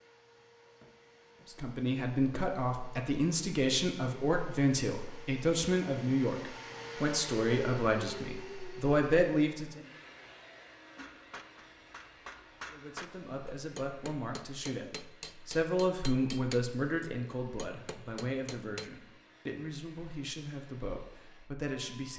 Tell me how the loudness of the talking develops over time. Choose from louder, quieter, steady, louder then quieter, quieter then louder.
quieter.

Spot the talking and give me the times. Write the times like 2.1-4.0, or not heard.
1.4-9.8, 12.7-22.1.